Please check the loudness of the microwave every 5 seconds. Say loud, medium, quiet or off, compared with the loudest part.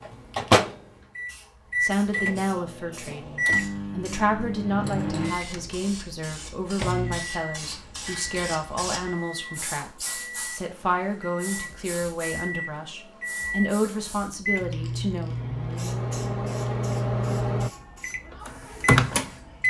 loud, medium, medium, loud.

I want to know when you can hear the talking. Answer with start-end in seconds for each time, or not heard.
1.8-15.3.